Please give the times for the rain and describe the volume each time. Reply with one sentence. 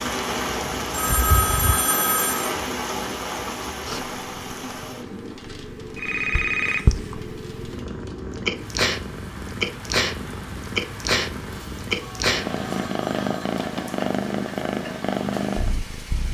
The rain can be heard from 0.0 to 16.2 s, getting quieter.